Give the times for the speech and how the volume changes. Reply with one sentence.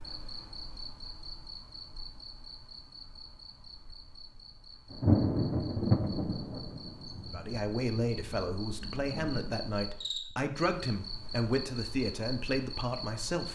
You can hear the speech from 7.3 to 13.4 s, at a steady volume.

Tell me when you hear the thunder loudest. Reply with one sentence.
The volume of the thunder peaks at 5 seconds.